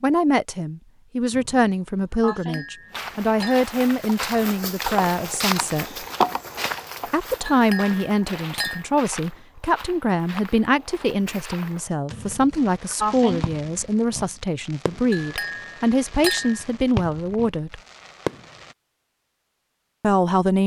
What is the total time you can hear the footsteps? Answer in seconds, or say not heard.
10 s.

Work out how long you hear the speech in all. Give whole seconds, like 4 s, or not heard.
17 s.